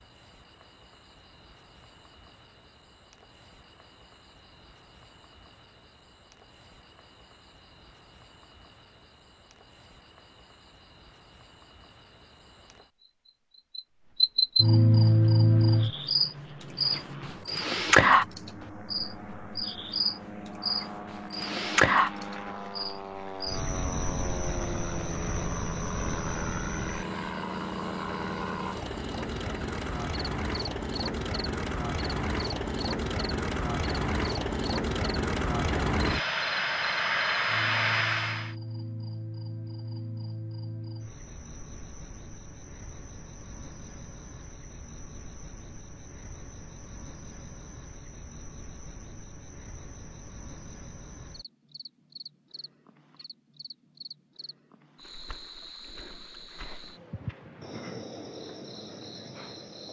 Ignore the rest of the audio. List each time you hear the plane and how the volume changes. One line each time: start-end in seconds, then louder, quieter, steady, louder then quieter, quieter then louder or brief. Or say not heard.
14.9-38.5 louder.